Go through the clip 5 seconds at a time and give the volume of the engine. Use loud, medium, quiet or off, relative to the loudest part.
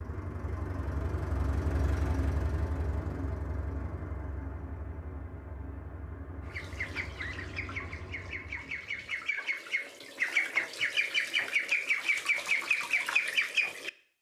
loud, medium, off.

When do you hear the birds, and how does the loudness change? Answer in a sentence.
The birds can be heard from 6.5 to 13.9 s, getting louder.